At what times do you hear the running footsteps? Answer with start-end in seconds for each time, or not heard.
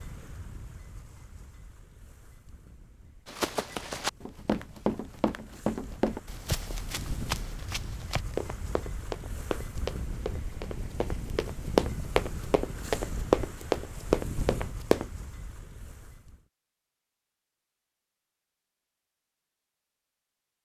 3.2-15.1.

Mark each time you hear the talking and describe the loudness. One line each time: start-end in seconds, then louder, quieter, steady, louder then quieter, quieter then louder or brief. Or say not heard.
not heard.